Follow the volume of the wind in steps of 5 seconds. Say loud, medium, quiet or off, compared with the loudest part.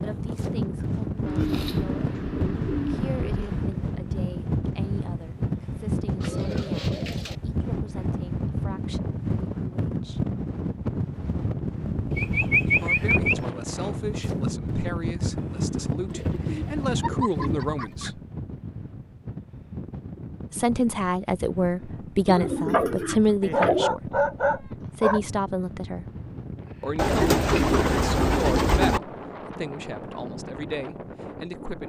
loud, loud, loud, loud, medium, medium, medium.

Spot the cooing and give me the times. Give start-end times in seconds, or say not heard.
1.2-3.8, 6.2-7.3, 12.1-13.4, 16.1-18.1, 22.2-23.9, 26.9-29.0.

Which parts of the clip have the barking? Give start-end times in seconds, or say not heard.
23.4-25.2.